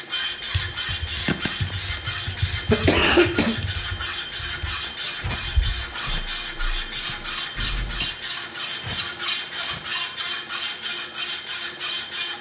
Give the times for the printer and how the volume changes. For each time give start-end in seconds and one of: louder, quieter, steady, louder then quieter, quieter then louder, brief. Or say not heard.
0.0-12.3 steady.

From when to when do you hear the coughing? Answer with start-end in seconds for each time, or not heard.
2.2-3.5.